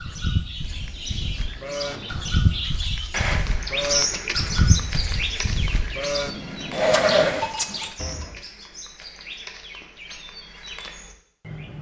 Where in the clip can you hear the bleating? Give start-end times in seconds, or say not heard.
0.0-8.4.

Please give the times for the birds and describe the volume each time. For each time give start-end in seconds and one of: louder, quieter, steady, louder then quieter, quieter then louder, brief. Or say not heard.
0.0-11.7 louder then quieter.